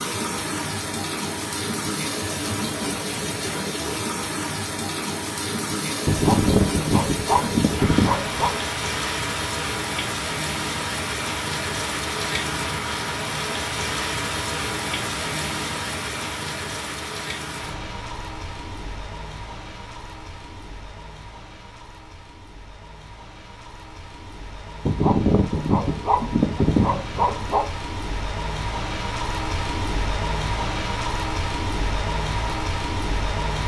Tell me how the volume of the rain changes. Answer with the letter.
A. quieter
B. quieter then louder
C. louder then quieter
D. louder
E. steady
B.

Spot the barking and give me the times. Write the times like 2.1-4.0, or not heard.
6.0-8.6, 24.9-27.6.